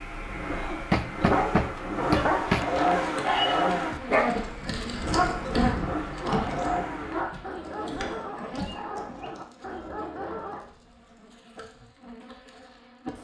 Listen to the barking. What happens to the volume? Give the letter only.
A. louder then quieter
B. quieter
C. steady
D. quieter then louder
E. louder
B.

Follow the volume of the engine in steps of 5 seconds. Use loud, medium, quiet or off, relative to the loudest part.
loud, loud, off.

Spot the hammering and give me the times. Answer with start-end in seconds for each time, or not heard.
0.9-2.9.